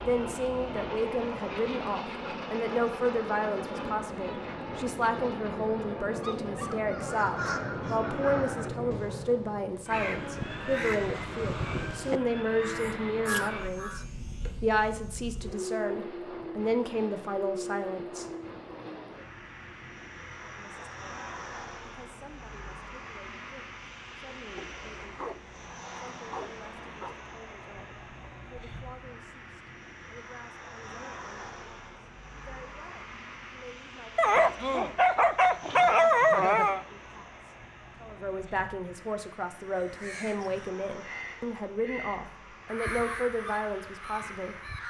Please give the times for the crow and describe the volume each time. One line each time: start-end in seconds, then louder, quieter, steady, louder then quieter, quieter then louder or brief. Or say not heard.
7.0-14.1 quieter then louder
39.7-44.8 louder then quieter.